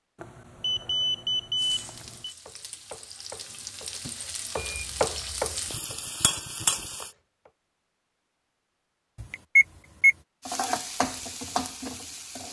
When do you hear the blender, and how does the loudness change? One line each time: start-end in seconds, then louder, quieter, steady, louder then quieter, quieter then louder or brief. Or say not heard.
not heard.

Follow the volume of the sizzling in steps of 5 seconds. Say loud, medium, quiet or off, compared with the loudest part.
medium, loud, loud.